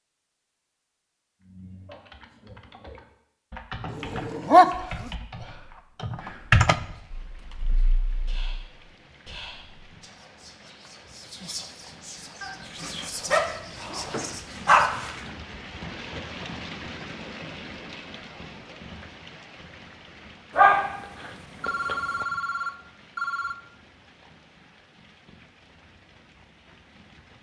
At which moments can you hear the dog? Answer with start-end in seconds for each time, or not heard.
3.9-5.1, 12.4-15.2, 20.6-22.2.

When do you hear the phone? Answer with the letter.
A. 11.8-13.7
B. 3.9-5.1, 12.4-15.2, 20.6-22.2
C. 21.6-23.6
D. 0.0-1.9
C.